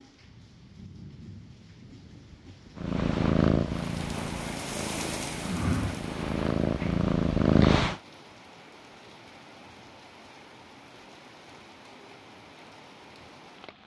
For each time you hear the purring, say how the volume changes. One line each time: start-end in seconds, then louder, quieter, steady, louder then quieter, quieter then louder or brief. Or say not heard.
2.8-8.0 quieter then louder.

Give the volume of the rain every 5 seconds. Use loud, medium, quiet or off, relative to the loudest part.
loud, loud, medium.